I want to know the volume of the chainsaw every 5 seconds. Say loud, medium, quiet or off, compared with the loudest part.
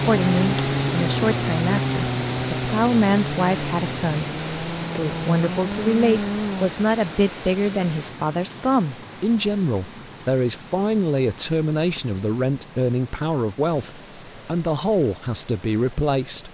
loud, loud, off, off.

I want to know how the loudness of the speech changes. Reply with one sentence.
The loudness of the speech stays about the same.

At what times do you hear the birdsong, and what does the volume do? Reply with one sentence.
You can't hear the birdsong here.